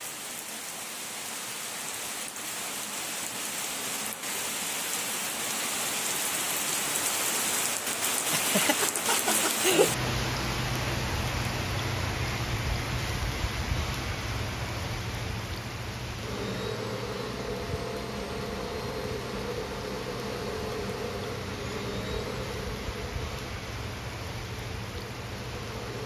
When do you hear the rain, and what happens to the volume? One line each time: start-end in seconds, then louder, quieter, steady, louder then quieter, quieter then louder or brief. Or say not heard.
0.0-26.0 louder then quieter.